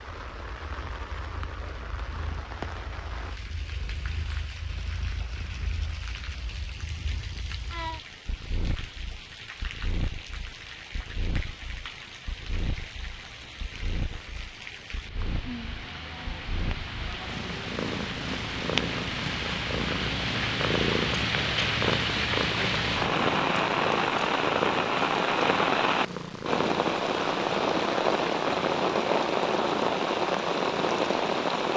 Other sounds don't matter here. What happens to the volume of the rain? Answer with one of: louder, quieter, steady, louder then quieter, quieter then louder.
louder.